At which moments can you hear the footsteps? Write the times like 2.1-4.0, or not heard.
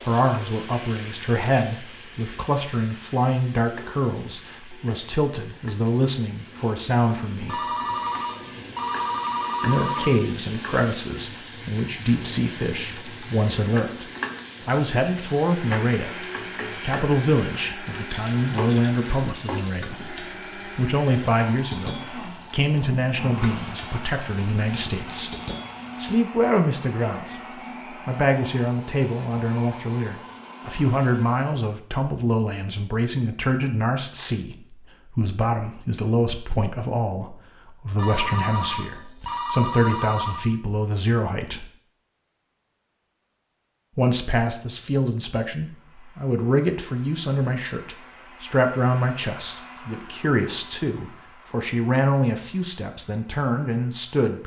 not heard.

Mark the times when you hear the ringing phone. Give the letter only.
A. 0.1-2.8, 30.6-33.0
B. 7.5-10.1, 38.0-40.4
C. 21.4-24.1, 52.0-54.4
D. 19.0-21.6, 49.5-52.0
B.